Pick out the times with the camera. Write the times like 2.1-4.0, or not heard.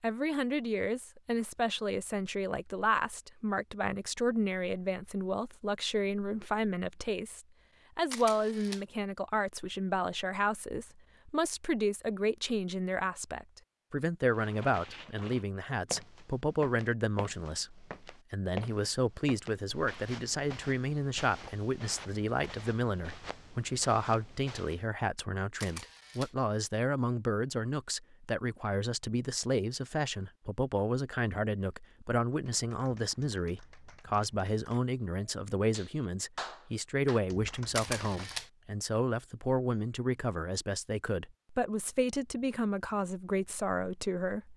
8.1-8.8, 25.6-26.4, 37.7-38.5.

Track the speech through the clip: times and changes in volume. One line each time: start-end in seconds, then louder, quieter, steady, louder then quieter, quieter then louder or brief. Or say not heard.
0.0-44.5 steady.